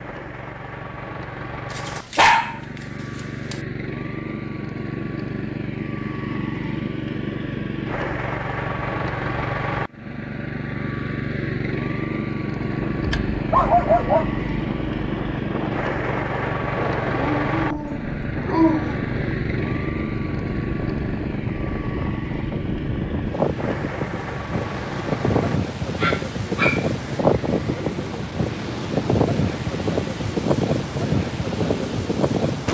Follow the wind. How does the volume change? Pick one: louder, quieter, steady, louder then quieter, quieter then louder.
louder.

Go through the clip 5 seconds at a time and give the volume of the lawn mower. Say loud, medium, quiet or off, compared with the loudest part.
medium, loud, loud, loud, loud, medium, medium.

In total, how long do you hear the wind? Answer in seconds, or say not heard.
20 s.